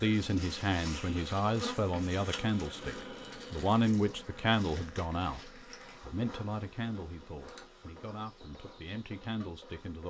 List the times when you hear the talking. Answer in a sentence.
The talking can be heard from 0.0 to 10.0 s.